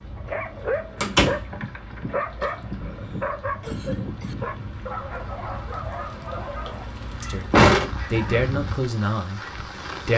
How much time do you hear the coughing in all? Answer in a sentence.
You can hear the coughing for 2 seconds altogether.